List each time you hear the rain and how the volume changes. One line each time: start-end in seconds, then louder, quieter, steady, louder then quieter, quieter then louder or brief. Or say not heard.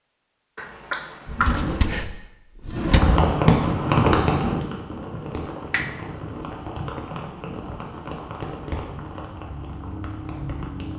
3.0-10.9 quieter.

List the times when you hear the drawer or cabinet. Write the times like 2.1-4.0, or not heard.
1.2-3.2.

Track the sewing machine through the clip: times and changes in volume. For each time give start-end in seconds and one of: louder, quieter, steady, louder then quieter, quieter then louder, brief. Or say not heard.
not heard.